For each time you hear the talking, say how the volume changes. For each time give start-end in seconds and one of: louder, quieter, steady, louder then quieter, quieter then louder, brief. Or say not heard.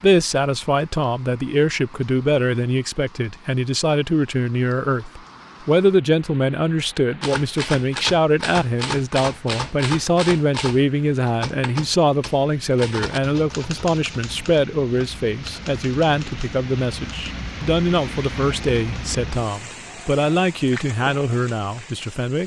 0.0-22.4 steady.